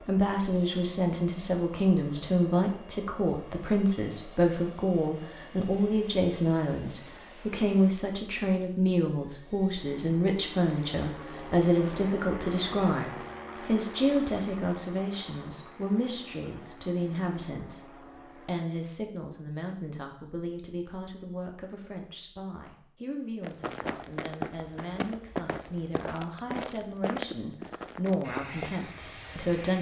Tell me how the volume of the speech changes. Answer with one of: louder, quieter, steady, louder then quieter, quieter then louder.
quieter.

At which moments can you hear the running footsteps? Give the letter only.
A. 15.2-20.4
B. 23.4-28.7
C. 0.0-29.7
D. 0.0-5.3
B.